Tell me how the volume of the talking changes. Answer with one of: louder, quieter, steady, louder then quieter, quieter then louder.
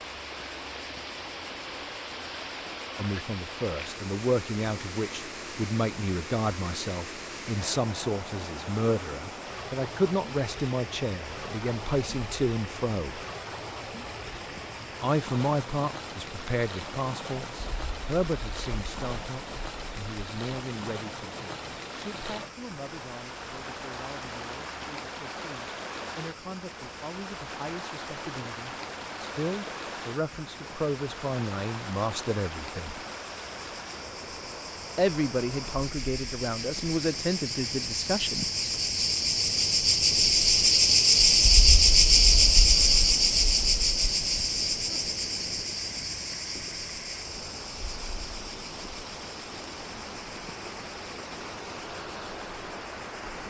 quieter then louder.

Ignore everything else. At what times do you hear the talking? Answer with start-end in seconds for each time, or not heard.
3.0-13.2, 15.0-33.0, 35.0-38.5.